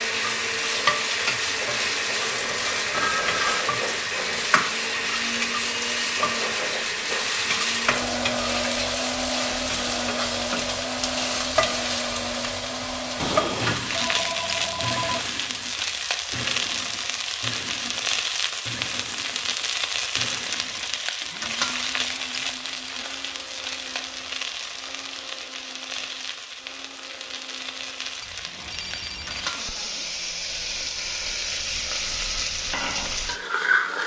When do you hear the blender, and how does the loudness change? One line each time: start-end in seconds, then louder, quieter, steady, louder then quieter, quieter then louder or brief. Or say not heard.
0.0-34.0 quieter.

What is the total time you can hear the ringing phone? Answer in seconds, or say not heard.
4 s.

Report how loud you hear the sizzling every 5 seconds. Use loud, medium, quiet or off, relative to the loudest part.
loud, loud, loud, loud, loud, medium, loud.